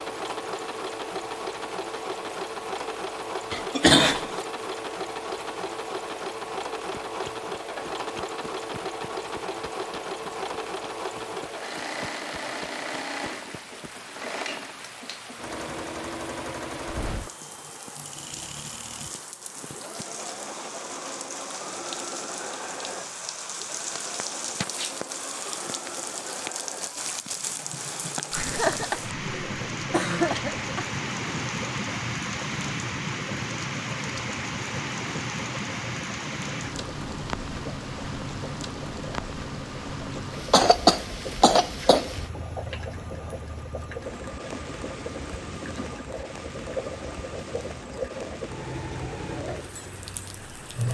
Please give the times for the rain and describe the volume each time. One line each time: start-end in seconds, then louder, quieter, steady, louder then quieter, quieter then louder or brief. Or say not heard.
0.0-50.9 louder then quieter.